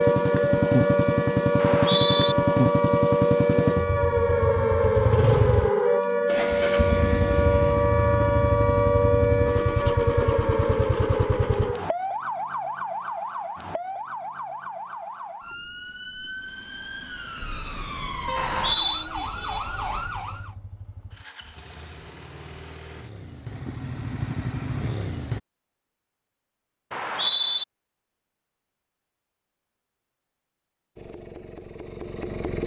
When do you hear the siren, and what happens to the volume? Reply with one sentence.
The siren can be heard from 0.0 to 20.6 s, getting quieter.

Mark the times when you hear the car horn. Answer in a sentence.
The car horn can be heard from 17.4 to 18.6 s.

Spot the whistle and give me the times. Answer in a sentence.
The whistle can be heard from 1.6 to 2.4 s, from 18.4 to 19.1 s and from 26.9 to 27.6 s.